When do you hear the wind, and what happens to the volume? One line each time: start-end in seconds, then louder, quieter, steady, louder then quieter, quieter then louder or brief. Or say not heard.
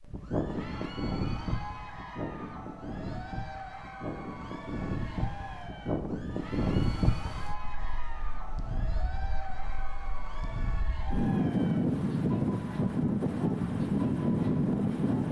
0.0-15.2 louder.